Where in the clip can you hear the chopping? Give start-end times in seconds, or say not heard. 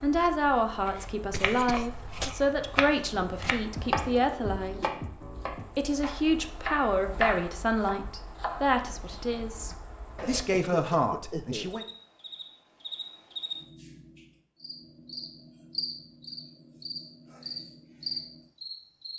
0.8-10.4.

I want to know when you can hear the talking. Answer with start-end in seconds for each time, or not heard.
0.0-4.8, 5.8-11.8.